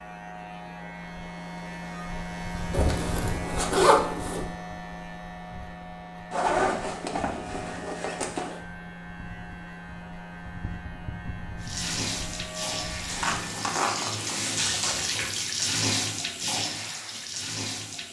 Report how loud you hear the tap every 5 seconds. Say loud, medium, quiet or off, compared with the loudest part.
off, off, loud, loud.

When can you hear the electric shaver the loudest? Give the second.
3 s.